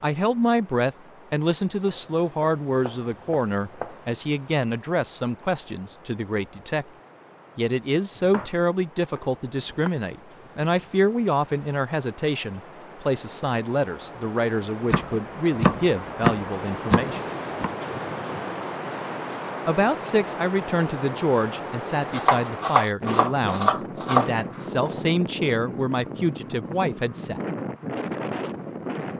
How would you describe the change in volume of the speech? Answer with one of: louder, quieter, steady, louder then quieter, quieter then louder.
steady.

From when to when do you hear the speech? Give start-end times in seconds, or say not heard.
0.0-6.8, 7.5-17.2, 19.6-27.4.